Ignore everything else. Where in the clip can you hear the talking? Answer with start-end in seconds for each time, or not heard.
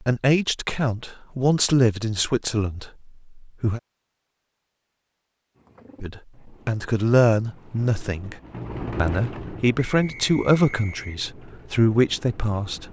0.0-3.8, 6.0-8.3, 8.9-12.8.